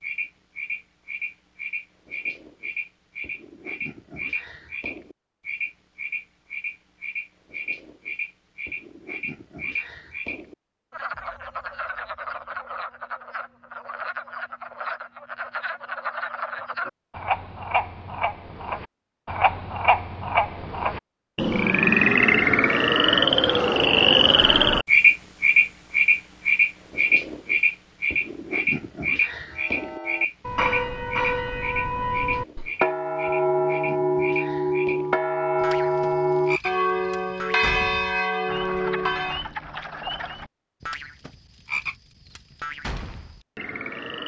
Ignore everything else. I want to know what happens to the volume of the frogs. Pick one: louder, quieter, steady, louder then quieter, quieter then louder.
louder then quieter.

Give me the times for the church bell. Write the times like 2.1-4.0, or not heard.
29.5-39.5.